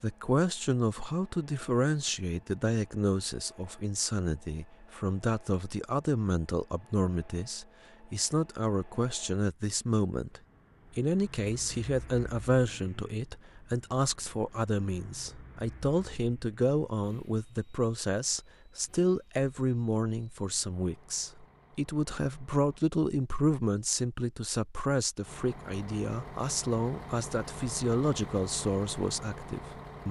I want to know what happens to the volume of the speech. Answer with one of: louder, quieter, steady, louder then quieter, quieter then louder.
steady.